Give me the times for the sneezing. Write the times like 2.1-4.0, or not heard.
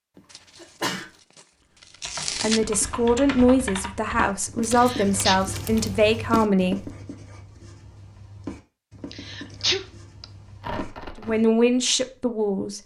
0.1-1.1, 4.7-5.4, 9.1-10.2.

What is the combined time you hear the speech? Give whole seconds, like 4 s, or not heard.
6 s.